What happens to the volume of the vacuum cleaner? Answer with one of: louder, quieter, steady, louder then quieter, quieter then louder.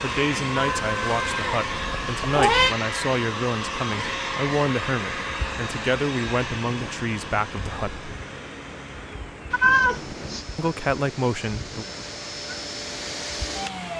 quieter then louder.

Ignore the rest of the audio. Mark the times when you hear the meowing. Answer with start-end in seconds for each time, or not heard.
0.6-2.8, 9.5-10.4.